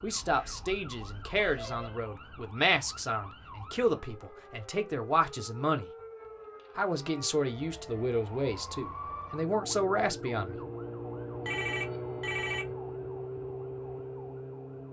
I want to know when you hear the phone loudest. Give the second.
12 s.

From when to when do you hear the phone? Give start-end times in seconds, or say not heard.
0.2-2.0, 11.4-12.7.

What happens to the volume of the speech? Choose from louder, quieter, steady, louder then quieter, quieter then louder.
steady.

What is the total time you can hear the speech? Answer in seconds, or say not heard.
10 s.